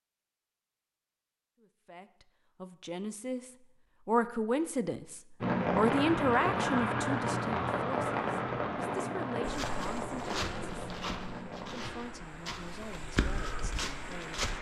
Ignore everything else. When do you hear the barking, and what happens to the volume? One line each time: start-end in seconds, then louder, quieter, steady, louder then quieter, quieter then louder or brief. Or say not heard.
not heard.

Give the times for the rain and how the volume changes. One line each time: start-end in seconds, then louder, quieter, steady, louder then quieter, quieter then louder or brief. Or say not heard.
5.4-14.5 quieter.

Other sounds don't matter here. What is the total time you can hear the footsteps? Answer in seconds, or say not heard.
5 s.